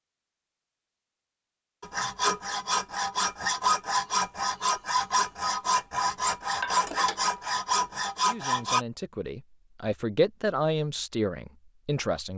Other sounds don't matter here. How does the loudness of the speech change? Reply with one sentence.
The loudness of the speech goes up, then down.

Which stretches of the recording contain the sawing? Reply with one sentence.
The sawing can be heard from 1.8 to 8.8 s.